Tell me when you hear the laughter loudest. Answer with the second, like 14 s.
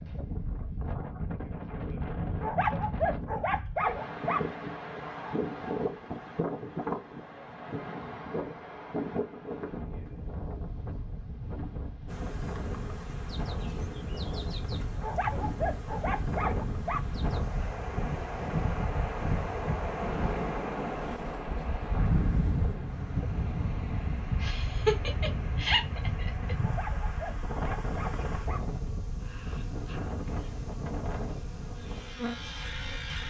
25 s.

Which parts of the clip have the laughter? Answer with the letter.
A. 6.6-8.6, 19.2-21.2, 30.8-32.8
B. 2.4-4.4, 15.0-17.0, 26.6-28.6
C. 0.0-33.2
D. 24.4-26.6
D.